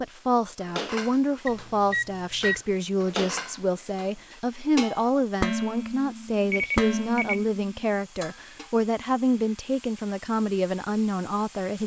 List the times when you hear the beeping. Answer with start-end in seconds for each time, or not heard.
1.4-2.6, 6.5-7.4.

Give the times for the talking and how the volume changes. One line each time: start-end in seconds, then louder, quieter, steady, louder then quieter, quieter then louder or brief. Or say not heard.
0.0-11.8 steady.